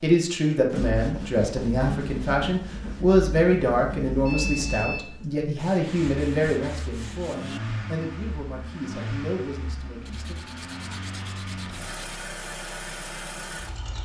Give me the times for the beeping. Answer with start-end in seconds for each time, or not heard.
4.2-5.1.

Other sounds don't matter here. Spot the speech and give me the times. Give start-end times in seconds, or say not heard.
0.0-10.3.